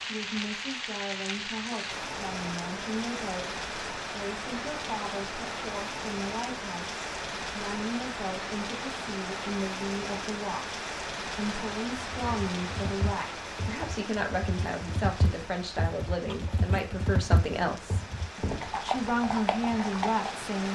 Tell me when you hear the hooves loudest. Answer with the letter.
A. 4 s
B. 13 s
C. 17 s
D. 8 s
C.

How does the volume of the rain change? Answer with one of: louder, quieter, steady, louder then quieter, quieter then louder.
quieter.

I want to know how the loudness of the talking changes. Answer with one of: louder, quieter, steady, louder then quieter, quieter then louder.
louder.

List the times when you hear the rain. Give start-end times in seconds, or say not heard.
0.0-20.6.